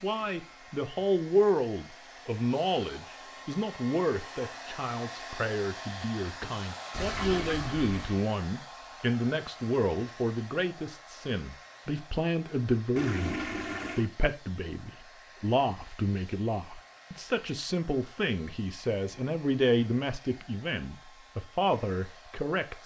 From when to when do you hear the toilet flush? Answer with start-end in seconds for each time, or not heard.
6.9-8.2, 12.9-14.1.